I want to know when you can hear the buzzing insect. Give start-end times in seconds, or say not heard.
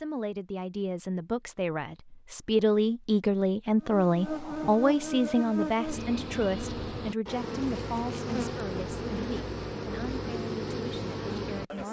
3.8-11.8.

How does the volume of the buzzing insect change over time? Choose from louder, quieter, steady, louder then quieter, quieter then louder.
steady.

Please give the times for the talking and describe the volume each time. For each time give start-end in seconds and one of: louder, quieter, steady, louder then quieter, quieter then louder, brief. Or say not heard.
0.0-11.8 louder then quieter.